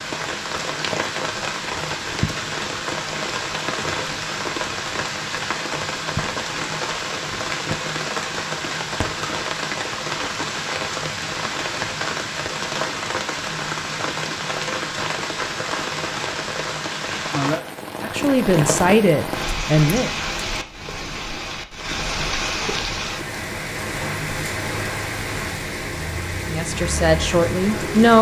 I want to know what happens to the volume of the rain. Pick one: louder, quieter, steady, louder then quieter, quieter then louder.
steady.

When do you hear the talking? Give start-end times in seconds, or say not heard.
18.0-20.1, 26.5-28.1.